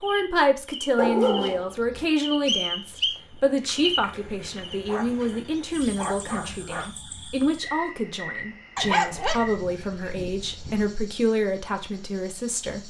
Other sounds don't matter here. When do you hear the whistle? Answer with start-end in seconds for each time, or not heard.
2.5-3.2.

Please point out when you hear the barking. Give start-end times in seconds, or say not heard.
0.9-2.0, 4.8-6.9, 8.8-10.9.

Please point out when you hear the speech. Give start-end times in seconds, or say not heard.
0.0-12.8.